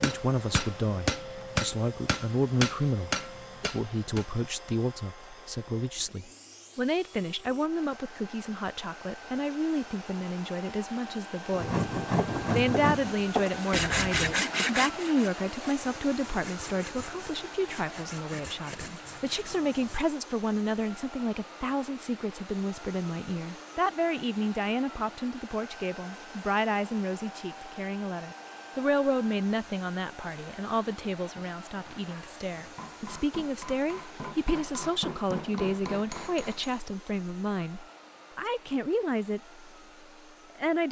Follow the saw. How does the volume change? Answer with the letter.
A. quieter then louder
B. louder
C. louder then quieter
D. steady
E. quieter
E.